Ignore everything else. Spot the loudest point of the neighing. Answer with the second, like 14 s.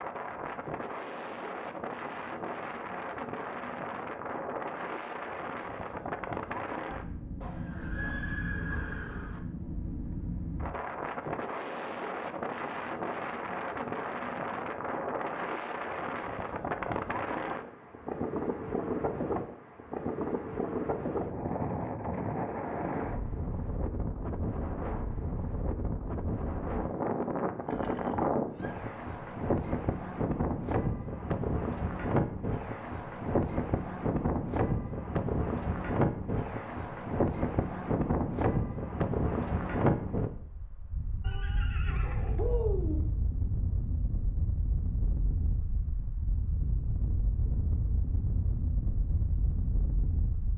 43 s.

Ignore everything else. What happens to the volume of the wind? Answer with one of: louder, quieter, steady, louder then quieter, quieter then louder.
louder then quieter.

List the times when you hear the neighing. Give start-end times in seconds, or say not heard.
7.4-9.4, 27.6-28.7, 41.2-43.0.